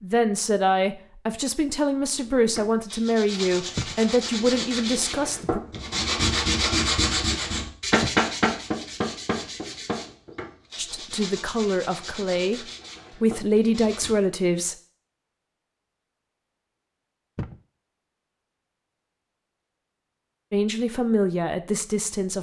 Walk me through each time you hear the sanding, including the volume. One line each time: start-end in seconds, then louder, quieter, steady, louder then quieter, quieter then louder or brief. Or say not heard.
2.1-14.2 louder then quieter.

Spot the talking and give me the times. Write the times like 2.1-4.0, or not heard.
0.0-5.6, 10.8-12.6, 13.2-14.8, 20.5-22.3.